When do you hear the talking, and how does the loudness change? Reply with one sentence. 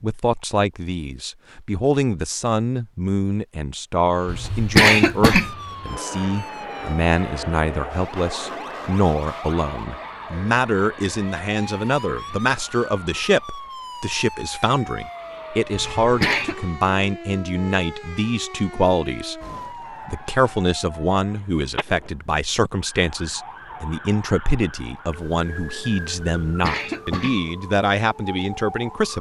You can hear the talking from 0.0 to 19.4 s, at a steady volume; and from 20.1 to 29.1 s, at a steady volume.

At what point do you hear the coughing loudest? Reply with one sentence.
The volume of the coughing peaks at 5 seconds.